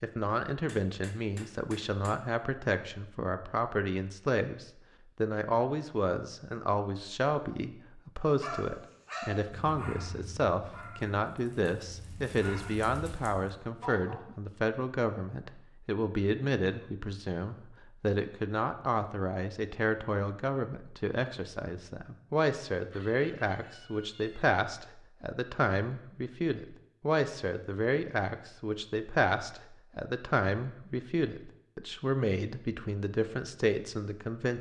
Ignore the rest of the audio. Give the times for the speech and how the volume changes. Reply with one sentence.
You can hear the speech from 0.0 to 34.5 s, at a steady volume.